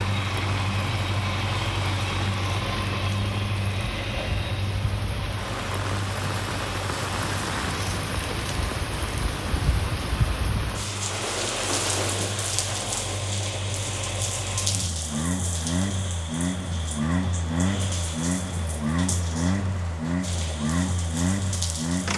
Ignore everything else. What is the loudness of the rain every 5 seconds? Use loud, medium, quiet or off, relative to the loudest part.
medium, loud, loud, medium, medium.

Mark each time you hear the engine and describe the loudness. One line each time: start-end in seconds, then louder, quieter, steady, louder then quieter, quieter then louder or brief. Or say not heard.
0.0-22.1 quieter then louder.